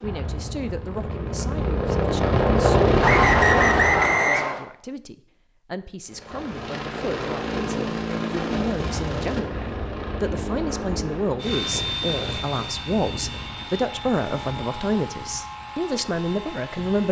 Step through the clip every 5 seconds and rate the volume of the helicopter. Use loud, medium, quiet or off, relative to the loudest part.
loud, medium, medium, quiet.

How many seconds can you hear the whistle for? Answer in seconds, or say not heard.
2 s.